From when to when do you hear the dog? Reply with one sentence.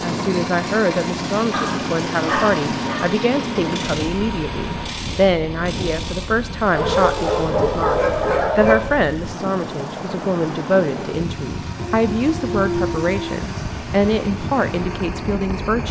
You can hear the dog from 1.5 to 3.0 s, from 6.7 to 8.8 s and from 11.8 to 13.3 s.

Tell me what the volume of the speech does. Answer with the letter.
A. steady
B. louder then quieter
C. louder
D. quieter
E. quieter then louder
A.